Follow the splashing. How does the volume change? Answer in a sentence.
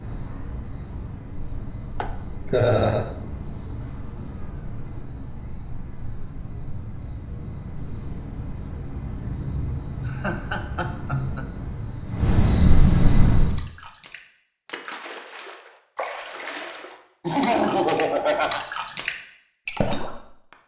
The volume of the splashing goes up.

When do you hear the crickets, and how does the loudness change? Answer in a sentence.
The crickets can be heard from 0.0 to 13.7 s, getting louder.